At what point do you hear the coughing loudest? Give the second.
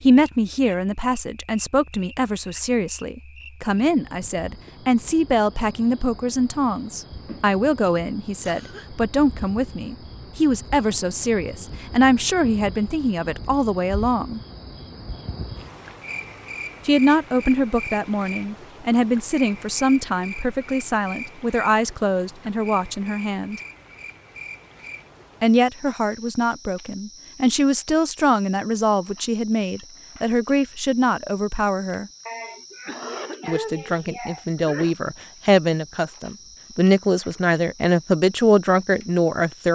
34 s.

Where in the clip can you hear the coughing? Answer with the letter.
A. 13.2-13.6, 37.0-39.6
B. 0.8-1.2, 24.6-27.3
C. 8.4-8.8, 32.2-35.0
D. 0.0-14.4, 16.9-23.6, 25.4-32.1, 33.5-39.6
C.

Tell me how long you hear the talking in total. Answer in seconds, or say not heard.
34 s.